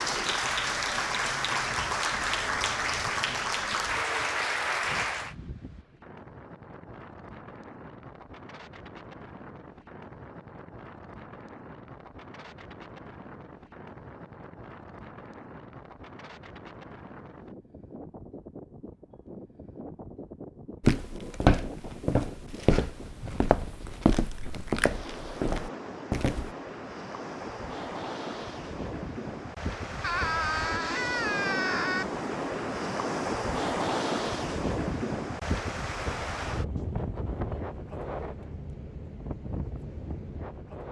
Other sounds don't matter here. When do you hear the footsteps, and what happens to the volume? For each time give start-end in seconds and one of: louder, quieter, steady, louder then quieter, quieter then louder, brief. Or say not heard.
20.8-26.5 quieter.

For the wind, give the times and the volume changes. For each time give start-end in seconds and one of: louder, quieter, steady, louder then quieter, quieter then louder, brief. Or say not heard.
0.0-40.8 louder.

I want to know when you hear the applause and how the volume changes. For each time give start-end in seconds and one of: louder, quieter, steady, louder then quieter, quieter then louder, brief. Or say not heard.
0.0-5.3 steady.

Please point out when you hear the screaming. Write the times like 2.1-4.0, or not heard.
30.0-32.0.